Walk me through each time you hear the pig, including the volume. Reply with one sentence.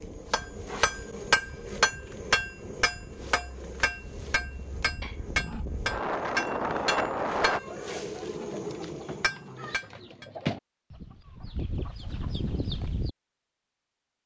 The pig can't be heard in this clip.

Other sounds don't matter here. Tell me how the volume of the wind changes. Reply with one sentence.
The loudness of the wind goes up.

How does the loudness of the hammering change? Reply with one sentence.
The loudness of the hammering goes down.